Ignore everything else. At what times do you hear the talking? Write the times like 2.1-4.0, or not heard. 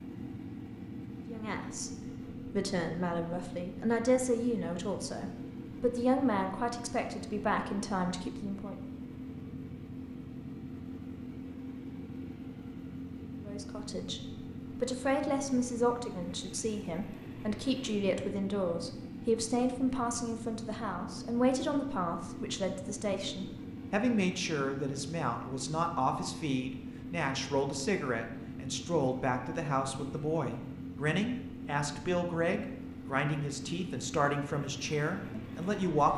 1.3-8.8, 13.4-36.1.